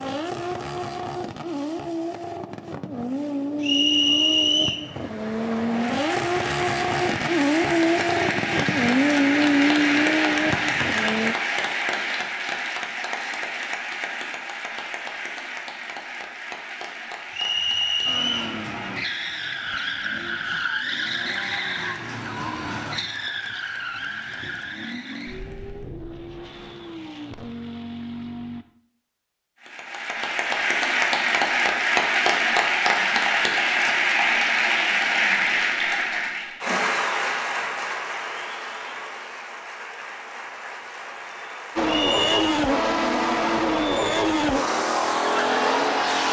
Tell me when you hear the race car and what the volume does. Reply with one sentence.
You can hear the race car from 0.0 to 11.3 s, getting louder; from 18.1 to 28.6 s, getting quieter; and from 41.8 to 46.2 s, at a steady volume.